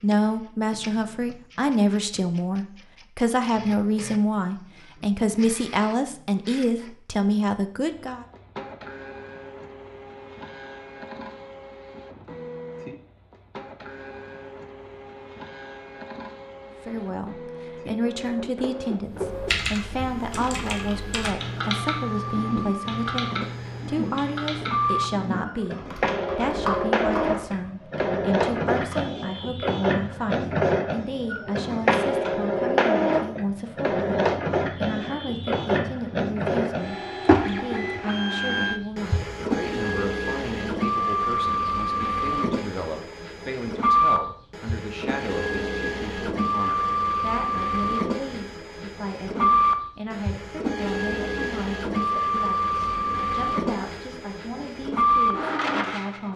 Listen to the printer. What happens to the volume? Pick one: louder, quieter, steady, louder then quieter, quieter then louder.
louder.